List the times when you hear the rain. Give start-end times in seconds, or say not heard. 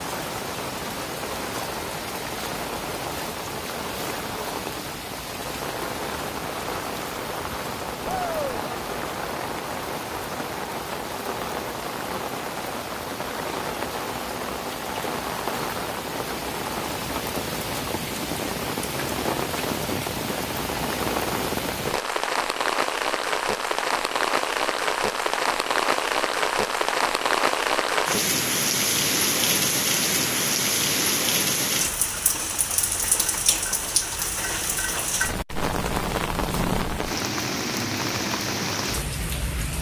0.0-39.7.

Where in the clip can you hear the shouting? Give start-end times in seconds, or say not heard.
8.0-8.7.